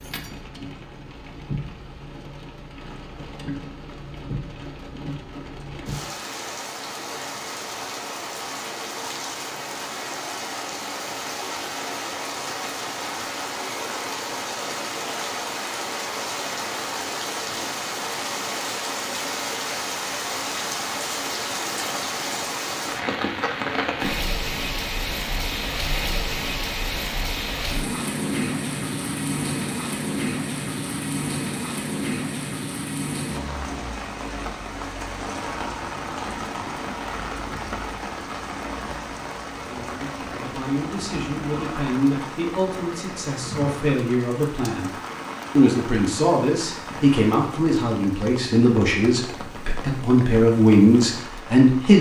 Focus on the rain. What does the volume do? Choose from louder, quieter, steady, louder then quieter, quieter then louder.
louder then quieter.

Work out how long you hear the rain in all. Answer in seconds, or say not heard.
52 s.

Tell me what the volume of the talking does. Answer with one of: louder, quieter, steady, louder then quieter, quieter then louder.
louder.